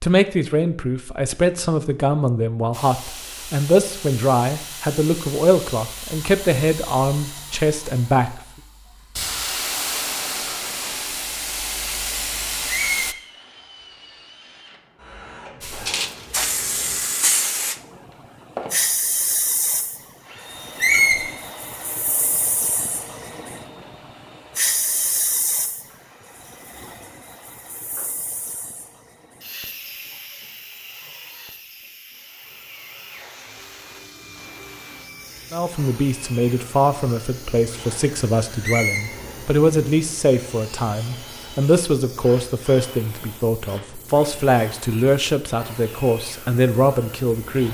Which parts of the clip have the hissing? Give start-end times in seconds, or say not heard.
2.7-13.2, 15.6-47.6.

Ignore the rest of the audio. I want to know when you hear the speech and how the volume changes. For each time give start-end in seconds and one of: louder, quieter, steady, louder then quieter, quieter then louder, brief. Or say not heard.
0.0-8.4 steady
35.5-47.6 steady.